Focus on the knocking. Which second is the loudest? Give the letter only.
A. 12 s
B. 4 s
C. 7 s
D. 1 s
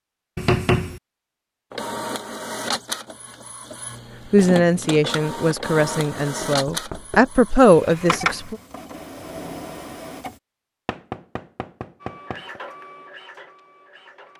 D.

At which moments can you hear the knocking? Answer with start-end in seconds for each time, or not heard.
0.3-1.0, 6.5-7.3, 10.8-12.6.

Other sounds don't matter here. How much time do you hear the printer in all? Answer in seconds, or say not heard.
11 s.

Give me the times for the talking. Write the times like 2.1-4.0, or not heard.
4.3-8.6.